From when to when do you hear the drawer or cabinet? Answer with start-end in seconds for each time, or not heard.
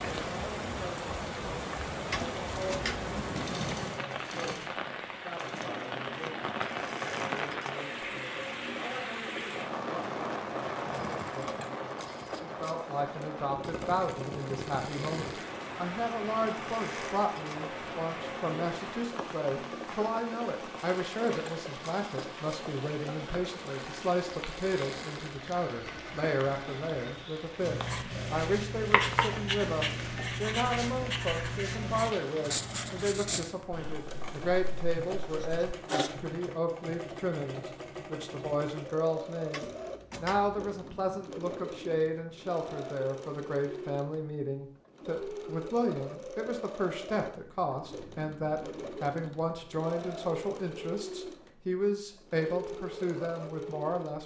2.1-3.1, 39.5-40.6.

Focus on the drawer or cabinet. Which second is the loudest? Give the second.
3 s.